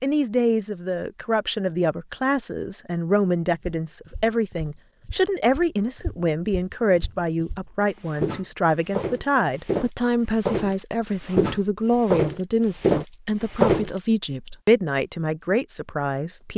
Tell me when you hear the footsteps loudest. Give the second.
14 s.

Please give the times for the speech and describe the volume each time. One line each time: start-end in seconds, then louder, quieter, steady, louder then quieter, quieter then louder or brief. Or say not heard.
0.0-16.5 steady.